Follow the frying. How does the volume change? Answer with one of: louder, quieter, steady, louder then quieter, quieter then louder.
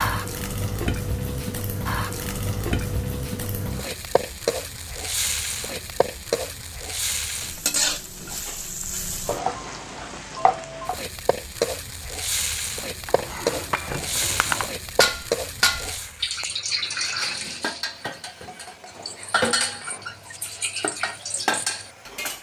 quieter.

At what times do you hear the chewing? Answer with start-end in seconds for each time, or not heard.
not heard.